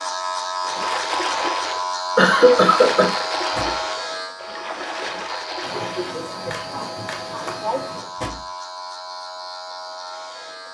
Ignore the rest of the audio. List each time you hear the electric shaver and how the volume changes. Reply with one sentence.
You can hear the electric shaver from 0.0 to 10.6 s, getting quieter.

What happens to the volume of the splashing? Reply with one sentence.
The volume of the splashing goes down.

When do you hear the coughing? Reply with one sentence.
The coughing can be heard from 2.1 to 3.2 s and from 5.6 to 8.1 s.